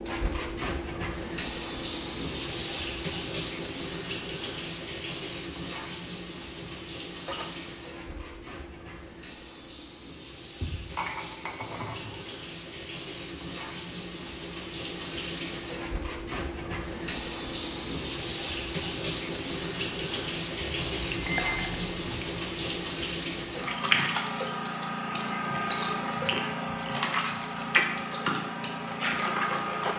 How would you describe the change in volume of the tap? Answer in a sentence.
The loudness of the tap goes down, then up.